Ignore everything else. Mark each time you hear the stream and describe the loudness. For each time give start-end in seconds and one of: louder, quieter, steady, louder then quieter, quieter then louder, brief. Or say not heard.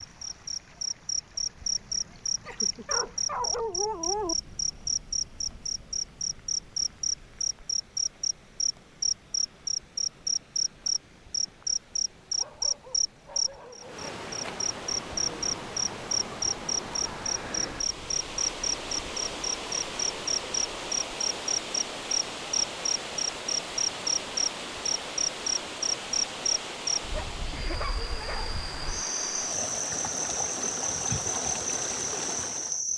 0.0-32.9 louder.